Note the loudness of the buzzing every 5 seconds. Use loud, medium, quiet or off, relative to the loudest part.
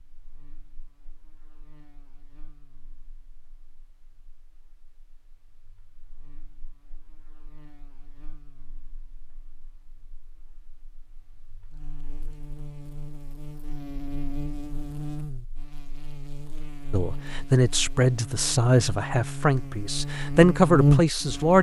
quiet, quiet, quiet, quiet, loud.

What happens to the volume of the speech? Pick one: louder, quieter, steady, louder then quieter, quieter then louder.
quieter then louder.